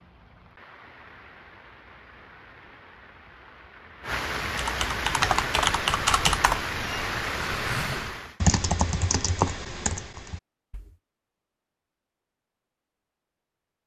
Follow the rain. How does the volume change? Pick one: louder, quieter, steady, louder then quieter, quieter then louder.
louder.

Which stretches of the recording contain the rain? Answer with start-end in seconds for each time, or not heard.
0.0-8.4.